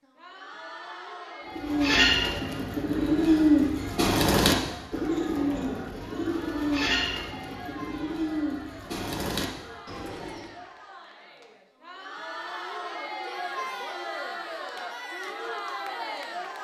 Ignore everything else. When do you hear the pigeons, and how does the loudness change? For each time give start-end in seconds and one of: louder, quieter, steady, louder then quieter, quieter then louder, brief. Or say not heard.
1.6-10.5 quieter.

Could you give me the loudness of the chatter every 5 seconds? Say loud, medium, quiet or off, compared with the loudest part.
medium, medium, loud, loud.